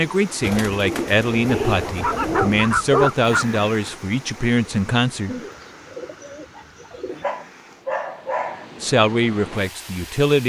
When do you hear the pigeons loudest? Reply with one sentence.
The loudest moment of the pigeons is at 2 seconds.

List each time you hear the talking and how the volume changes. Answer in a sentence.
You can hear the talking from 0.0 to 5.3 s, at a steady volume; and briefly from 8.8 to 10.4 s.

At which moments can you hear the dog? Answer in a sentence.
You can hear the dog from 2.0 to 3.6 s and from 6.9 to 8.7 s.